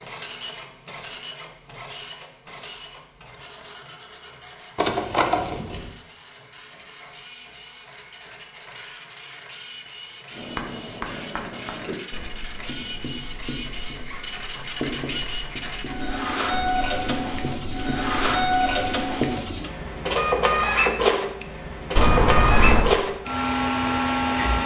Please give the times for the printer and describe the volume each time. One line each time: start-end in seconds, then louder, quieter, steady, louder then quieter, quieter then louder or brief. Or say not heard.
0.0-24.6 louder.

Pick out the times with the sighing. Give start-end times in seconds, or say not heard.
not heard.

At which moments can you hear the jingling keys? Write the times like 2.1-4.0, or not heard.
4.8-5.9, 21.9-22.9.